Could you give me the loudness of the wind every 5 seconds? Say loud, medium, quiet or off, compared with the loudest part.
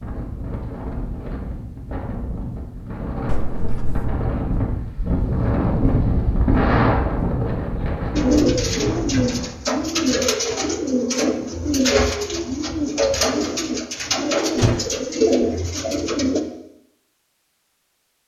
medium, loud, off, off.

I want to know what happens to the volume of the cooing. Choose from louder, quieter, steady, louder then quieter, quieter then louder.
steady.